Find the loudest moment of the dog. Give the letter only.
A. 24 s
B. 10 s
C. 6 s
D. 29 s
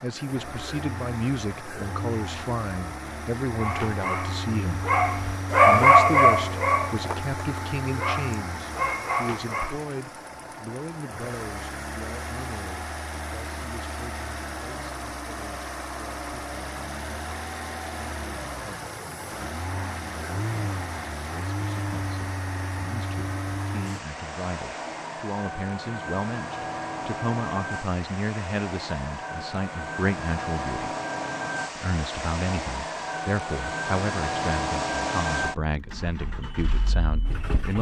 C.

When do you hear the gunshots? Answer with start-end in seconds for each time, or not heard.
not heard.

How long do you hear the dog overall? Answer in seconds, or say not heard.
6 s.